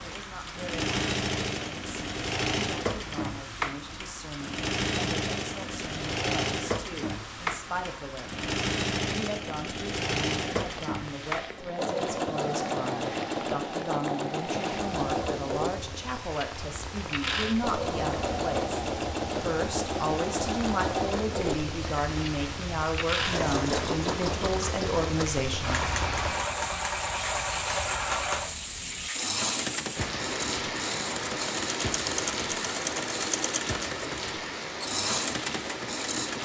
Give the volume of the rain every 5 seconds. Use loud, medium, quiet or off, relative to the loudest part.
medium, medium, medium, medium, loud, loud, loud, loud.